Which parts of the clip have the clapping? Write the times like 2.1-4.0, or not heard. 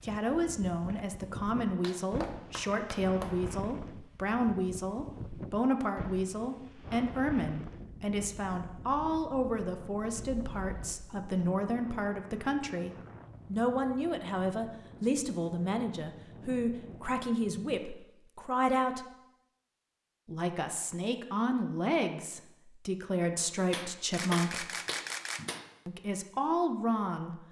1.8-3.4, 23.7-25.6.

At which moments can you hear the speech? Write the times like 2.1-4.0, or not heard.
0.0-19.1, 20.2-24.6, 25.9-27.4.